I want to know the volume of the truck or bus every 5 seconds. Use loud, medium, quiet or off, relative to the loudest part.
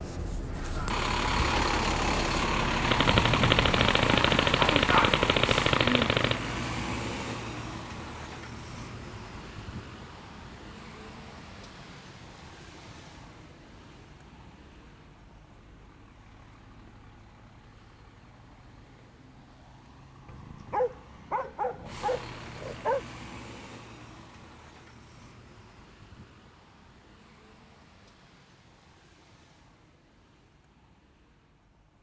loud, medium, quiet, quiet, quiet, quiet, quiet.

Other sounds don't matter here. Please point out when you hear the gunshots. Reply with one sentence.
The gunshots can be heard from 2.8 to 6.4 s.